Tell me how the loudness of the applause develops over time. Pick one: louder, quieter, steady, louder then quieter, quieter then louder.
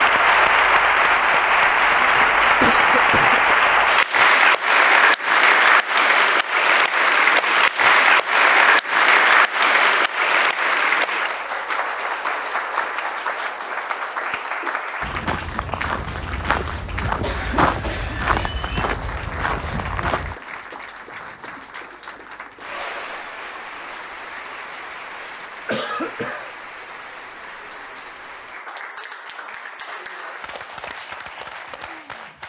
quieter.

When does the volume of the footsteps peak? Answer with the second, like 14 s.
18 s.